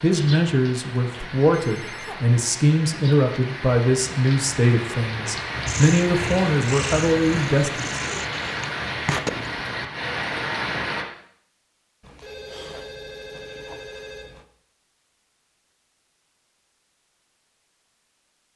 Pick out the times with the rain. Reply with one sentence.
The rain can be heard from 0.0 to 11.1 s.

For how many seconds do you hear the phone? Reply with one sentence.
The phone can be heard for 3 seconds in total.